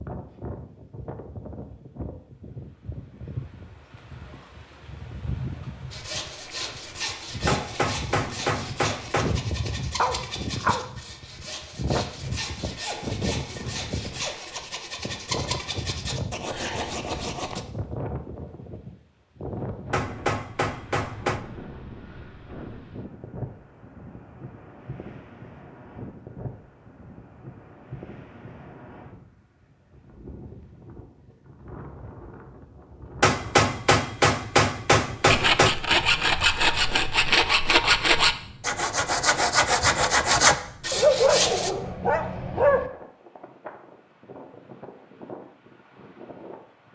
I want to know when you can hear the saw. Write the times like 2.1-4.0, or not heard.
5.9-17.6, 35.3-41.7.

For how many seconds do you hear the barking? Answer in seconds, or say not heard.
3 s.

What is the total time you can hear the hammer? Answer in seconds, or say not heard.
6 s.